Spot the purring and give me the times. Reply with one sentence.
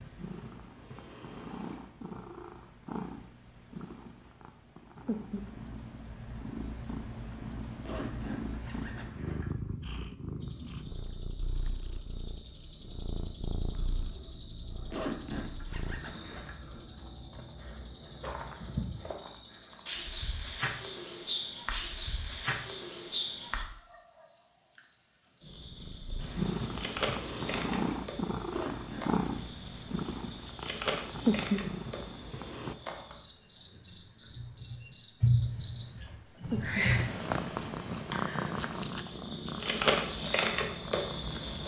The purring can be heard from 0.0 to 16.0 s, from 25.6 to 32.8 s and from 36.4 to 41.6 s.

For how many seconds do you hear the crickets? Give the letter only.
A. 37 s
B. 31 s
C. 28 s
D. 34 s
B.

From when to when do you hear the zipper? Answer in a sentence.
The zipper can be heard from 7.8 to 9.7 s, from 14.9 to 16.8 s and from 28.5 to 29.1 s.